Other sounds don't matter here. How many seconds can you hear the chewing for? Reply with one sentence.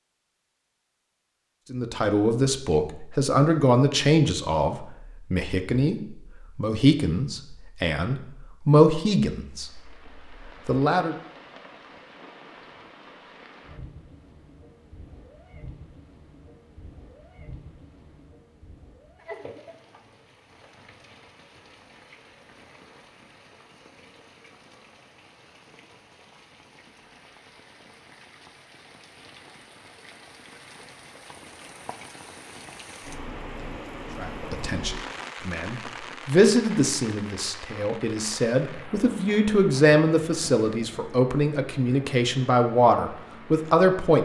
The chewing can't be heard in this clip.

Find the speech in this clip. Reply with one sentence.
You can hear the speech from 1.7 to 11.2 s and from 34.1 to 44.2 s.